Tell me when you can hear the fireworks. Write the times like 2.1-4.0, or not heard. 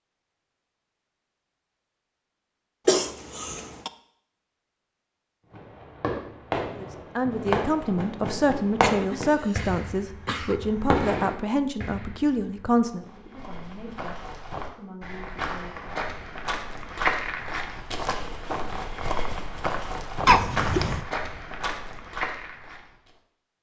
5.5-12.8.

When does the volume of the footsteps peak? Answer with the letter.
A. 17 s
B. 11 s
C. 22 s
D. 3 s
A.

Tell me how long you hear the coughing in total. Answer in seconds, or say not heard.
4 s.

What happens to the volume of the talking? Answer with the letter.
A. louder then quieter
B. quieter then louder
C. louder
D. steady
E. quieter
E.